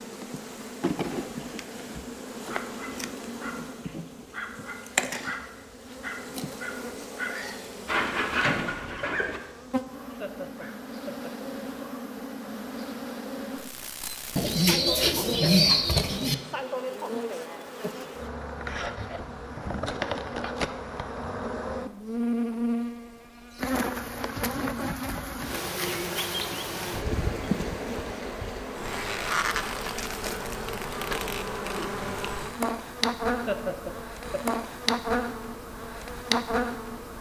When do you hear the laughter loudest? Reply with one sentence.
The volume of the laughter peaks at 34 seconds.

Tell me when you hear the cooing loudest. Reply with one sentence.
The volume of the cooing peaks at 16 seconds.